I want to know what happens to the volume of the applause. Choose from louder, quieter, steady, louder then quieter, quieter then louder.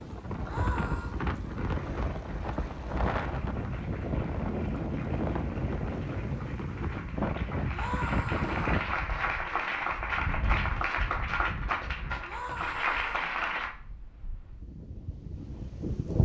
louder.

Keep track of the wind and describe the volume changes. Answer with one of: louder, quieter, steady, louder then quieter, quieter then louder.
quieter.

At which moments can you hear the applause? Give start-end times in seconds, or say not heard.
1.6-13.8.